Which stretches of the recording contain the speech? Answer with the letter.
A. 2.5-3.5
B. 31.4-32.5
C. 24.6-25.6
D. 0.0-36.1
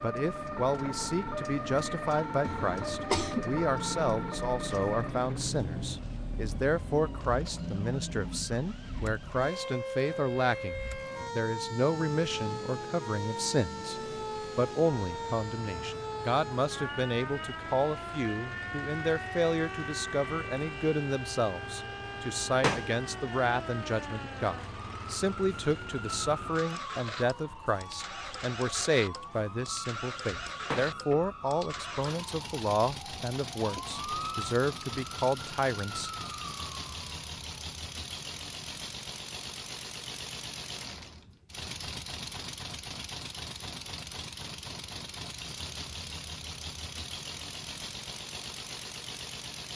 D.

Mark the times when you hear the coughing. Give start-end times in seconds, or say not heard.
2.5-3.5.